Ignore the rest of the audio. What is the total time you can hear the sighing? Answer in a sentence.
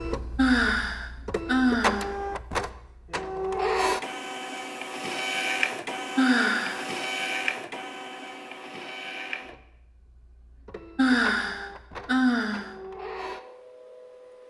The sighing can be heard for 4 seconds in total.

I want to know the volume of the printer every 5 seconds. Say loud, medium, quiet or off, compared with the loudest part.
loud, loud, medium.